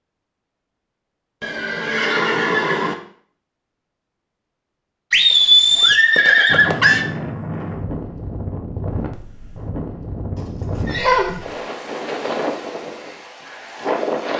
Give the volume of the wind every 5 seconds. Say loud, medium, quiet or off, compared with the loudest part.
off, loud, loud.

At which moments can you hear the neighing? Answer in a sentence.
The neighing can be heard from 1.4 to 3.0 s, from 5.1 to 7.0 s and from 10.7 to 11.4 s.